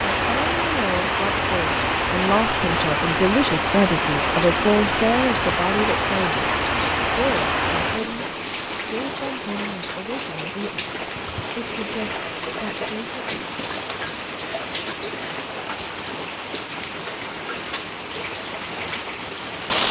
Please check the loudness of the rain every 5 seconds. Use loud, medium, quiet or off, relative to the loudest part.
loud, loud, medium, medium.